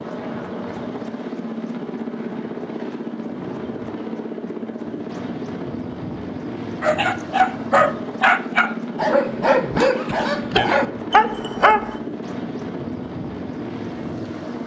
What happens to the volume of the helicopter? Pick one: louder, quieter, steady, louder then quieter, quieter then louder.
steady.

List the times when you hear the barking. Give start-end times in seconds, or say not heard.
6.8-11.9.